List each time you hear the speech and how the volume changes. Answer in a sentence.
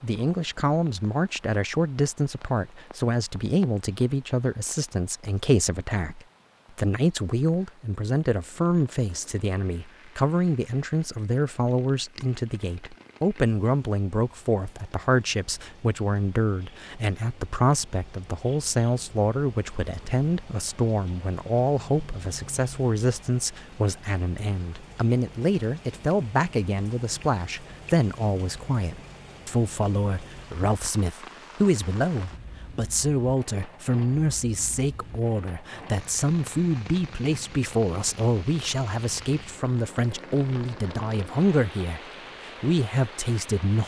You can hear the speech from 0.0 to 43.8 s, at a steady volume.